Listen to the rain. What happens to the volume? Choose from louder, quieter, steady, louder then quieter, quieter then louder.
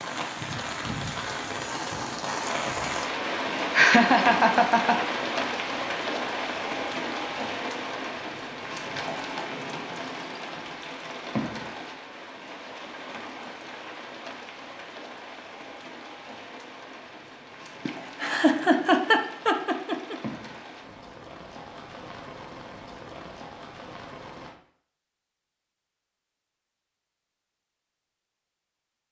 quieter.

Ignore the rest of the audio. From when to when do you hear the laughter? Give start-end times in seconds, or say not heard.
3.7-5.0, 17.9-20.1.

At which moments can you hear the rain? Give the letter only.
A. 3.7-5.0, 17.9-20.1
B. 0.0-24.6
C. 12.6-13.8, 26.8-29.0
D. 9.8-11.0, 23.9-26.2
B.